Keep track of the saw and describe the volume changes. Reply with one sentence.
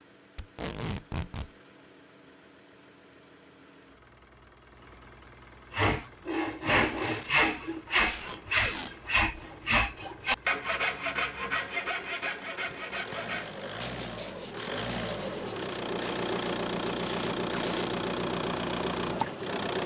The volume of the saw goes down.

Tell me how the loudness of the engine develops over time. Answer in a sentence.
The loudness of the engine goes up.